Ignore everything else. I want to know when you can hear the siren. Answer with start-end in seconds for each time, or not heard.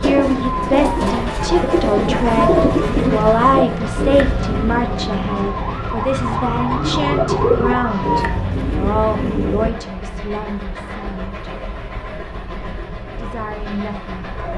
0.2-8.4.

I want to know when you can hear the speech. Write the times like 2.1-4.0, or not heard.
0.0-11.3, 13.2-14.5.